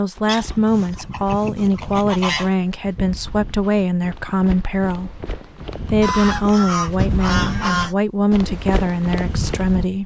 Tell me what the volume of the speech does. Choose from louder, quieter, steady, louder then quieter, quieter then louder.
steady.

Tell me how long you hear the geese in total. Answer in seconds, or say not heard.
4 s.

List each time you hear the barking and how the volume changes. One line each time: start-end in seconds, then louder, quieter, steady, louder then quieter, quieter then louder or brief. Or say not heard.
not heard.